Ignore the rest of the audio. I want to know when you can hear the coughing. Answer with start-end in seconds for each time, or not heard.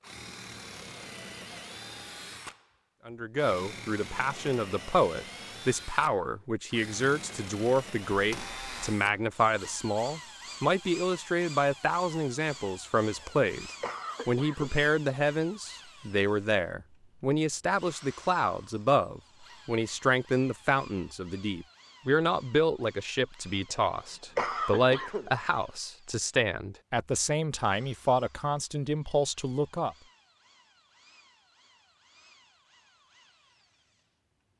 13.2-14.8, 23.7-25.3.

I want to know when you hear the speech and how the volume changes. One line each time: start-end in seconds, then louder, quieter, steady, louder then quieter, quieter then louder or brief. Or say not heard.
3.0-29.9 steady.